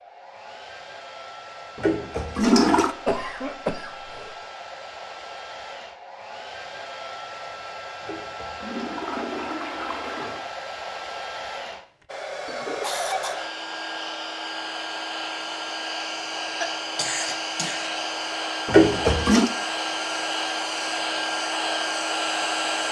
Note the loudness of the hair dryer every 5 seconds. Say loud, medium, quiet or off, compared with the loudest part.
quiet, medium, medium, loud, loud.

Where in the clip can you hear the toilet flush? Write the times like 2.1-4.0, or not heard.
1.8-3.0, 8.0-10.4, 18.6-19.5.